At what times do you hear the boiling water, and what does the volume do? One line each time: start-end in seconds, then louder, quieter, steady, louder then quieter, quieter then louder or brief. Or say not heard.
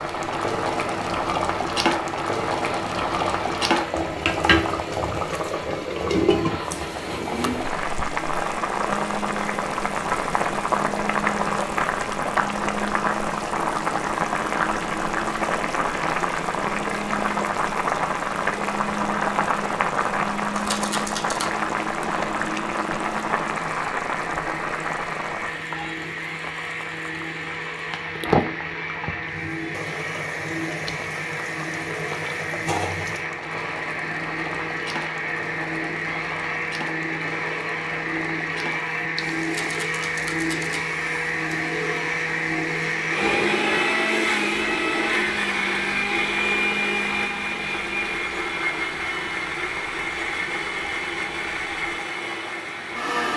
0.0-53.2 quieter.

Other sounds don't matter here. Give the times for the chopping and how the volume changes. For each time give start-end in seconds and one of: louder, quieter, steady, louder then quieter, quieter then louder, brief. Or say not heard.
not heard.